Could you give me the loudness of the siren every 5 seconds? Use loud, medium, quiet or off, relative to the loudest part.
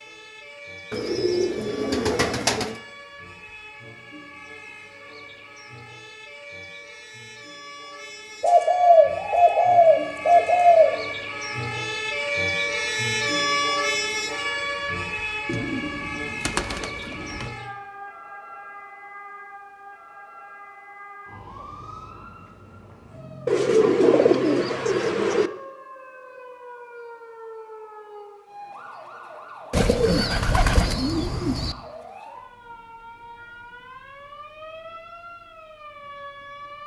quiet, quiet, loud, medium, quiet, quiet, quiet, quiet.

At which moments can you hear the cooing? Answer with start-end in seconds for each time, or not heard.
0.9-2.8, 8.4-11.0, 15.4-17.5, 23.4-25.5, 29.7-31.8.